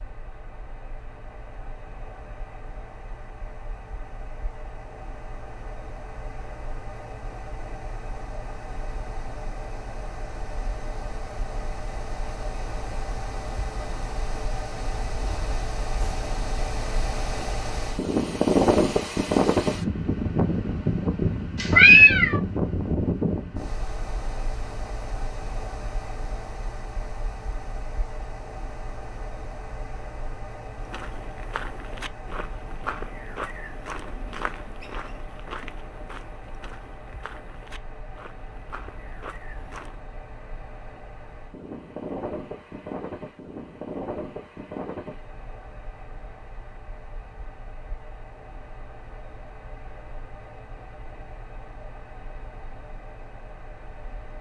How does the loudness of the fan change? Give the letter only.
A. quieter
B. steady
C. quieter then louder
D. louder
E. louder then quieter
E.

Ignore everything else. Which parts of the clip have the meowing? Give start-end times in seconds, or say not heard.
21.6-22.4.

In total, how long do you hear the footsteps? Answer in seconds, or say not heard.
9 s.